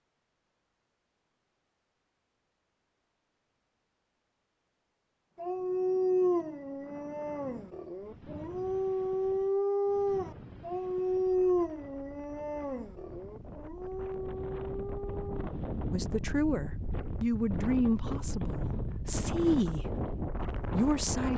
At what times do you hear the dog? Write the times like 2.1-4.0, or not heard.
5.3-15.6.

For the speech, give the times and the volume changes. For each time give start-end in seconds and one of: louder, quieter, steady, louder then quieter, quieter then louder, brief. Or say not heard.
15.9-21.3 quieter then louder.